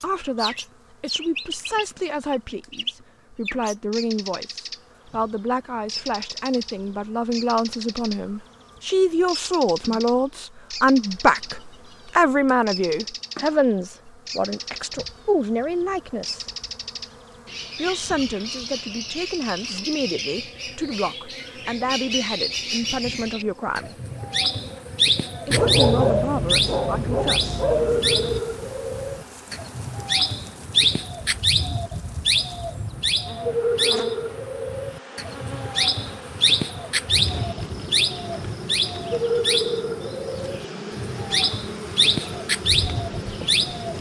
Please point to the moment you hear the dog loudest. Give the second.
26 s.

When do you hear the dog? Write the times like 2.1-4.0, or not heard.
25.5-28.4.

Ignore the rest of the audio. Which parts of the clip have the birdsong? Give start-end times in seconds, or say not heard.
0.0-4.8, 5.8-8.2, 9.2-11.6, 12.7-13.6, 14.2-15.2, 16.2-43.9.